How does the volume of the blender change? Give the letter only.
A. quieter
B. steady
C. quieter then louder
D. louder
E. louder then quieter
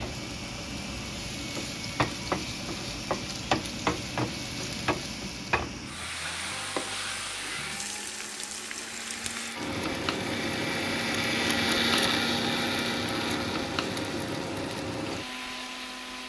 E.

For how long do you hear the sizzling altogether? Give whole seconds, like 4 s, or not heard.
16 s.